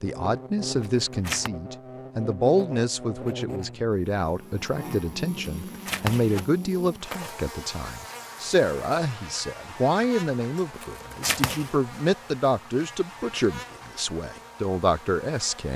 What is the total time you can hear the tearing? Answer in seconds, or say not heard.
4 s.